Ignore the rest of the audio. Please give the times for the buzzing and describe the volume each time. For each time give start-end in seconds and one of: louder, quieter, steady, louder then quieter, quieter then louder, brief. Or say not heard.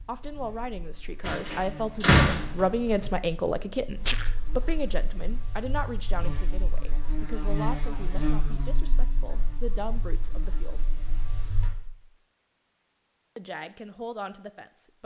0.0-11.7 louder then quieter.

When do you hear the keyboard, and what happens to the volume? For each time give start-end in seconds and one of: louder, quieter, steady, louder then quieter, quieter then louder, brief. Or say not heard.
not heard.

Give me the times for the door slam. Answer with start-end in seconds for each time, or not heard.
1.2-3.1.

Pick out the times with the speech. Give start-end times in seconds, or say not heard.
0.1-10.8, 13.3-15.0.